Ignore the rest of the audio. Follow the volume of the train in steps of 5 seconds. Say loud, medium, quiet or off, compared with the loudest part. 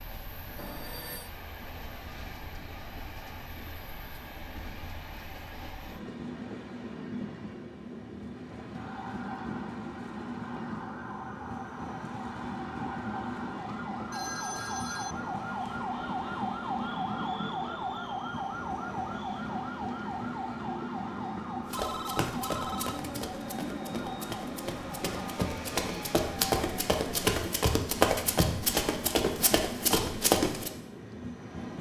medium, loud, loud, loud, loud, loud, loud.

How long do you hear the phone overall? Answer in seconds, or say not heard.
3 s.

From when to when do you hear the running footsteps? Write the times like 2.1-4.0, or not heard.
21.7-30.7.